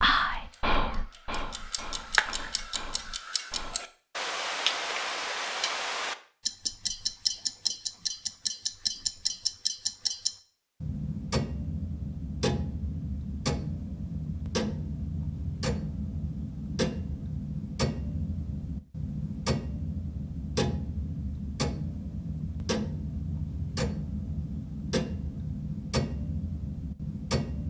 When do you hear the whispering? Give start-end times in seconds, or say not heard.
0.0-3.8.